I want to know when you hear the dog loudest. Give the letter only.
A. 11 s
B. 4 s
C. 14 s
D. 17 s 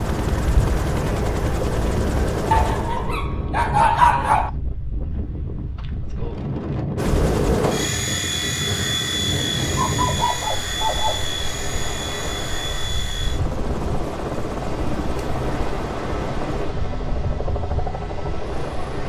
B.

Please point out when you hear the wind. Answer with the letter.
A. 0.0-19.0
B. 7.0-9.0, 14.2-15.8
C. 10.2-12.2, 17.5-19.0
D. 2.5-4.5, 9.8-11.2
A.